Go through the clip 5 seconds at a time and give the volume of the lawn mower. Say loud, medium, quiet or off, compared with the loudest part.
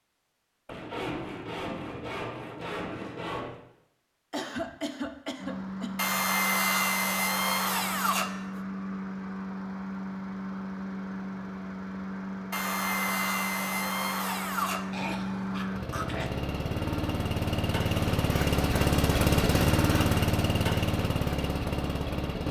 off, medium, medium, loud, loud.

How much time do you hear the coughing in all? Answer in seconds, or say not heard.
3 s.